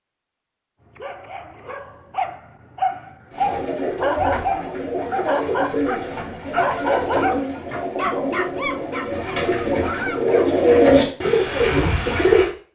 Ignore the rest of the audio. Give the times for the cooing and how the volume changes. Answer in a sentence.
The cooing can be heard from 3.3 to 12.5 s, getting louder.